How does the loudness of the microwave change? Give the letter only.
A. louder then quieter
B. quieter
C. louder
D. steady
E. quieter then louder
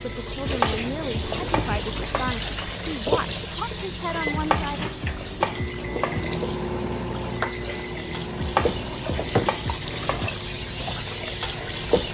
A.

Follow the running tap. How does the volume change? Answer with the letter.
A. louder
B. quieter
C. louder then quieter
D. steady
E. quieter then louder
E.